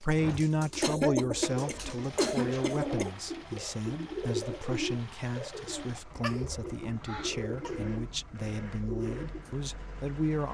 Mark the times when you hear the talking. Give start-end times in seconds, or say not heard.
0.0-10.4.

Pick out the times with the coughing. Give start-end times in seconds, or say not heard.
0.8-3.1, 6.2-7.9.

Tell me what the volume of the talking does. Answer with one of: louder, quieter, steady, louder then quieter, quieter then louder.
quieter.